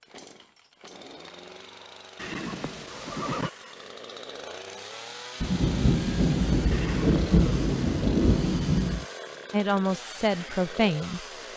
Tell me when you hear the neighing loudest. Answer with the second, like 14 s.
3 s.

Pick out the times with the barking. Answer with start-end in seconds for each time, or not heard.
not heard.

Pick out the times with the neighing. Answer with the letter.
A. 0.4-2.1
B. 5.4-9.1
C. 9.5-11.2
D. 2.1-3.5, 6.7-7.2
D.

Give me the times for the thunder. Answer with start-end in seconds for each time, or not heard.
5.4-9.1.